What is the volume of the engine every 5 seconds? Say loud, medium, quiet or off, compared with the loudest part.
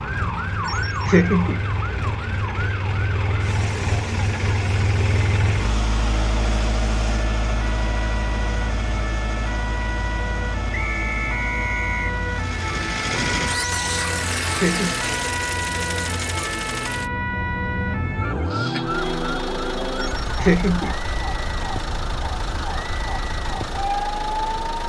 loud, loud, loud, loud, medium.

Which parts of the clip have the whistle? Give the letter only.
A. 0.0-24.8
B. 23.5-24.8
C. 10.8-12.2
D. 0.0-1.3
C.